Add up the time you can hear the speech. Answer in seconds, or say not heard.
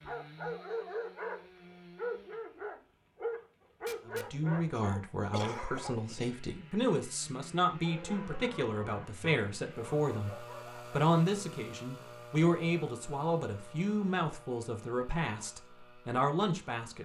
13 s.